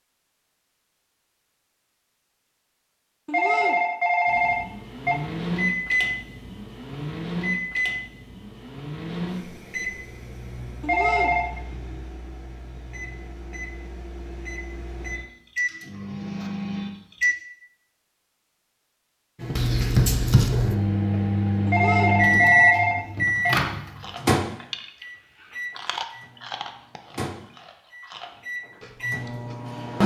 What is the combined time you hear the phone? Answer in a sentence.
You can hear the phone for 5 seconds altogether.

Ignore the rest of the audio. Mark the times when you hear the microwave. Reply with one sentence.
The microwave can be heard from 4.2 to 17.4 s and from 19.4 to 30.0 s.